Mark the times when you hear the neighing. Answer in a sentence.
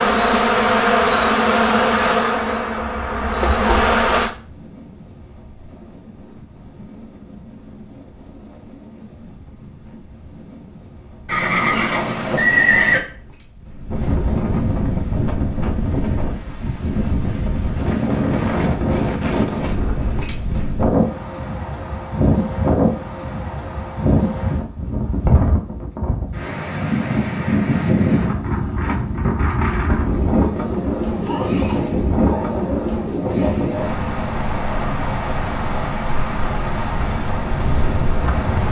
You can hear the neighing from 11.2 to 13.0 s and from 31.1 to 32.0 s.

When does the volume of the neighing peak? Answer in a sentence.
The loudest moment of the neighing is at 13 seconds.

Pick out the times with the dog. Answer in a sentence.
The dog can be heard from 32.2 to 34.0 s.